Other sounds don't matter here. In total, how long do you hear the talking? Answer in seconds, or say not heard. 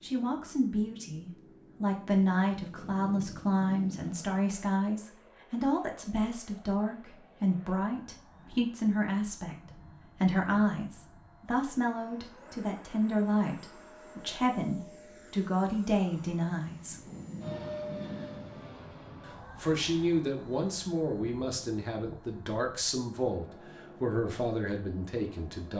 23 s.